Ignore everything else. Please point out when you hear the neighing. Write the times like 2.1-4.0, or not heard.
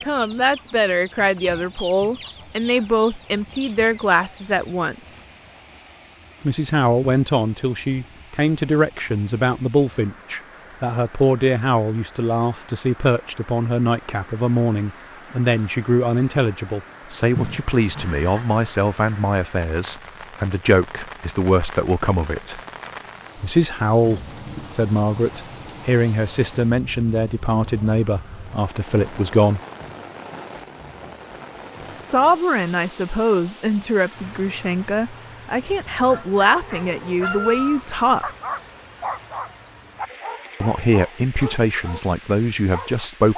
17.4-18.4.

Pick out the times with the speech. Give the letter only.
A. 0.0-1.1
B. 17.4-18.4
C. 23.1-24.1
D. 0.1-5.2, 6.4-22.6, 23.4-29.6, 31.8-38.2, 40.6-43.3
D.